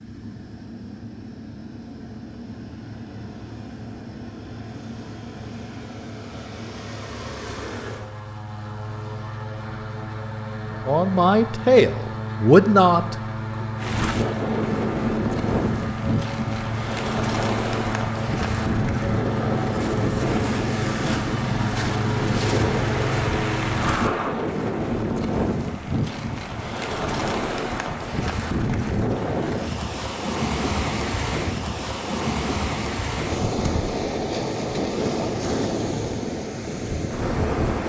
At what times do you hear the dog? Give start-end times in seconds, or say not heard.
not heard.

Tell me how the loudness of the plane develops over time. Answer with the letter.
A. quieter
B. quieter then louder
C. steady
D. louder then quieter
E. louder
E.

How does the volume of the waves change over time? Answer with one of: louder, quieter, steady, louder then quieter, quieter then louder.
steady.